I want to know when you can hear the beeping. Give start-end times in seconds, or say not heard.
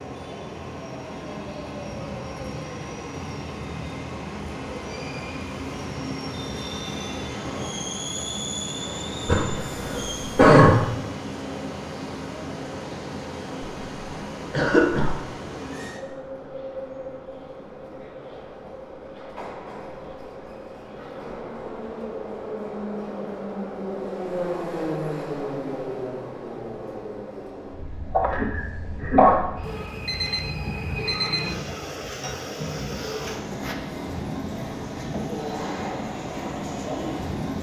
29.6-31.6.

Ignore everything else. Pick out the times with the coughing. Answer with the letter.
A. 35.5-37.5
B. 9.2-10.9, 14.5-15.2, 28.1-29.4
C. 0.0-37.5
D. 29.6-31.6
B.